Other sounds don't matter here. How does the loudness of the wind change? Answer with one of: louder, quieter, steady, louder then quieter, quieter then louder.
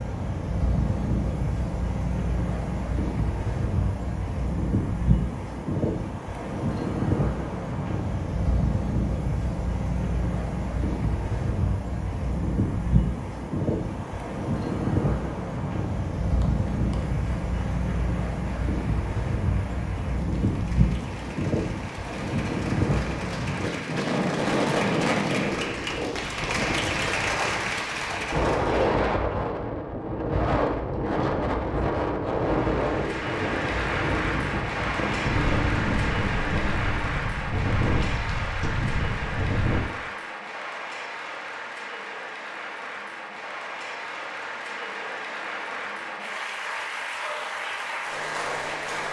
steady.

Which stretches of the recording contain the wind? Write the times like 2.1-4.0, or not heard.
0.0-39.8.